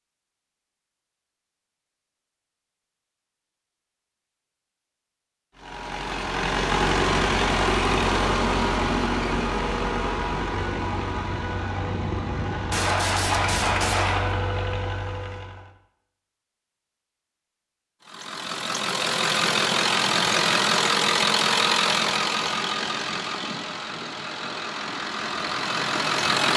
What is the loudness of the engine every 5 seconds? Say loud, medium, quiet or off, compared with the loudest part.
off, loud, medium, loud, loud, loud.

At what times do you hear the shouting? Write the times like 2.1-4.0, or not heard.
not heard.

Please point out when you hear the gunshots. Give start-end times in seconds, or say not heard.
12.7-14.3.